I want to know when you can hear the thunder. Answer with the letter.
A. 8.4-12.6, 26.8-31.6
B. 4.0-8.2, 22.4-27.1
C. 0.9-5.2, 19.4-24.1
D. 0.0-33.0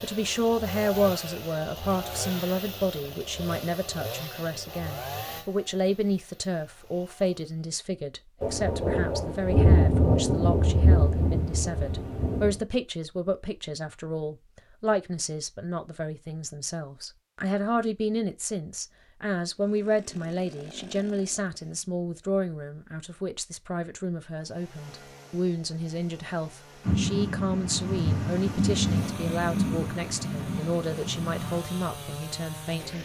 A.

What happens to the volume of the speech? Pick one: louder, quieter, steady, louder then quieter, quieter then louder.
steady.